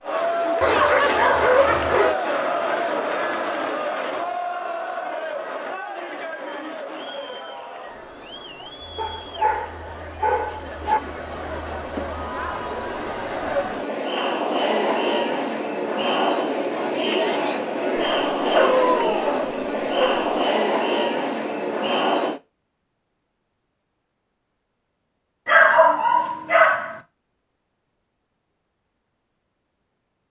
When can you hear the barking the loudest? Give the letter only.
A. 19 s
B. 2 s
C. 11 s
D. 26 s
D.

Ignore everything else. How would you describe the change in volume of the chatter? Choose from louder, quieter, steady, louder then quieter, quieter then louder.
quieter then louder.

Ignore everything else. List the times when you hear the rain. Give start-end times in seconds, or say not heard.
not heard.